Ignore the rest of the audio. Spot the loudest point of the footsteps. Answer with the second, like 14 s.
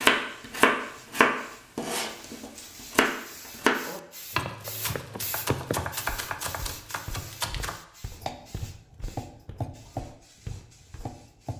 6 s.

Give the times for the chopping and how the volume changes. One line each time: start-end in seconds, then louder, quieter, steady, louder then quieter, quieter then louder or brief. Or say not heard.
0.0-11.5 quieter.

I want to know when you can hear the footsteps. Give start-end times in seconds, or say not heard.
4.5-11.2.